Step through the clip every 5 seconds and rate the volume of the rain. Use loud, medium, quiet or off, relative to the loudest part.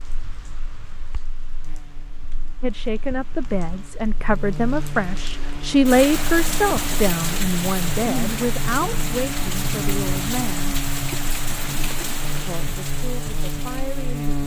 quiet, loud, loud.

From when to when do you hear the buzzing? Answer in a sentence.
You can hear the buzzing from 0.0 to 14.4 s.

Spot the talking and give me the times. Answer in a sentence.
You can hear the talking from 2.6 to 10.8 s and from 12.2 to 14.4 s.